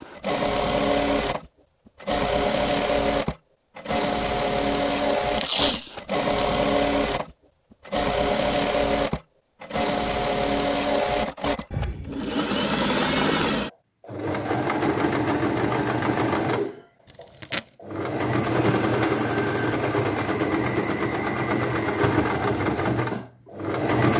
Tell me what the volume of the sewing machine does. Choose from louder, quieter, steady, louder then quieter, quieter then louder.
steady.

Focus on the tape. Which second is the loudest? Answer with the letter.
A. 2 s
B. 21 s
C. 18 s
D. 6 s
D.